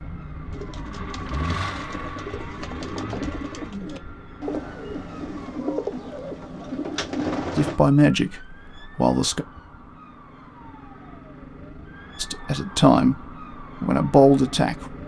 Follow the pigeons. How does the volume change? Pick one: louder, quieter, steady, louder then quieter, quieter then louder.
louder.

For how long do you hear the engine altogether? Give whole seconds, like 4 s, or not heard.
4 s.